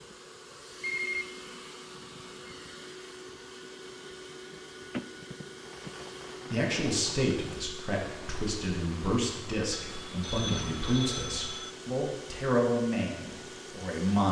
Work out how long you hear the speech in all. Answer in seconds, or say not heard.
8 s.